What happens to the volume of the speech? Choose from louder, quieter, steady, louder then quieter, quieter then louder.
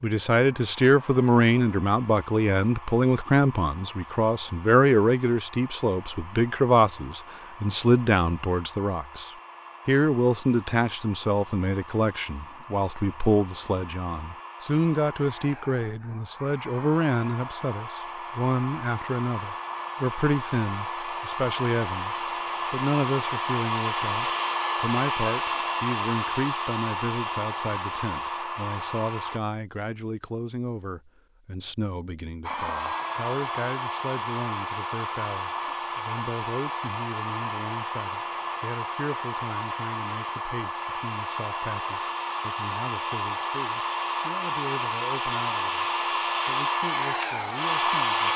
quieter.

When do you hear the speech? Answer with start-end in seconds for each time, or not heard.
0.0-48.3.